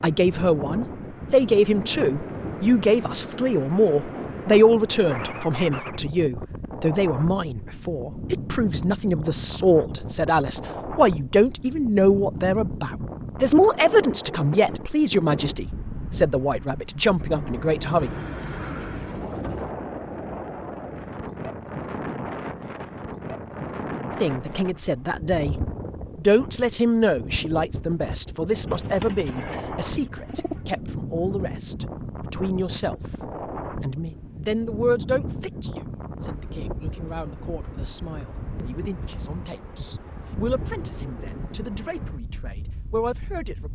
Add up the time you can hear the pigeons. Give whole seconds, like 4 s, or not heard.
4 s.